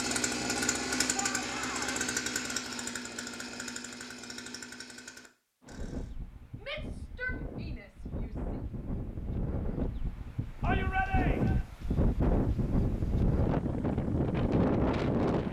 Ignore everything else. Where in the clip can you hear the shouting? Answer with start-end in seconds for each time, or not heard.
1.1-2.0, 6.6-8.4, 10.6-11.7.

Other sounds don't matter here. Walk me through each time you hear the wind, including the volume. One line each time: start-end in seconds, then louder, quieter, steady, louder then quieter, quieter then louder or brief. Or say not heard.
5.6-15.4 louder.